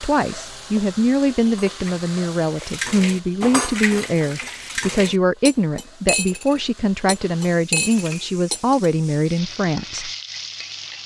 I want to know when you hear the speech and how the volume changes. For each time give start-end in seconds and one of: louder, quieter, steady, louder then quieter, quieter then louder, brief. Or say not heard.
0.0-10.1 steady.